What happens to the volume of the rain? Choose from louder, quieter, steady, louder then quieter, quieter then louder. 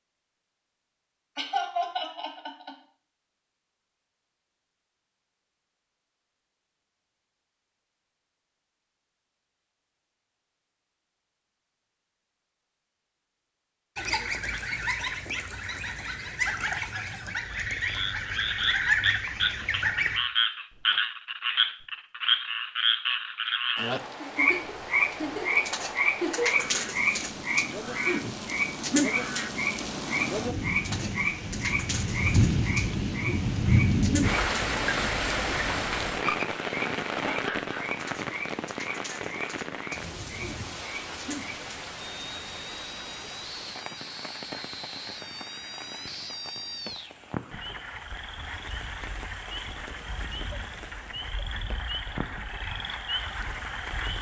louder then quieter.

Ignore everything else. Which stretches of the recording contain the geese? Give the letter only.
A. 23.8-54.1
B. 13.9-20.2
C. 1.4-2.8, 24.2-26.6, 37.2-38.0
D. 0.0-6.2
B.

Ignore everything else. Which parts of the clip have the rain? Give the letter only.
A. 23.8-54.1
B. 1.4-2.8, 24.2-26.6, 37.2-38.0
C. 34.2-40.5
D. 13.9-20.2
A.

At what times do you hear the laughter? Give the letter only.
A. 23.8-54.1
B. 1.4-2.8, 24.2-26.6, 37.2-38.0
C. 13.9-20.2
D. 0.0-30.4
B.